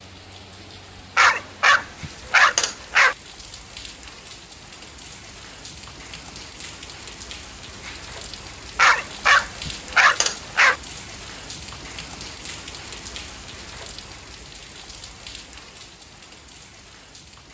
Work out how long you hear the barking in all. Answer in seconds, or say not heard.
4 s.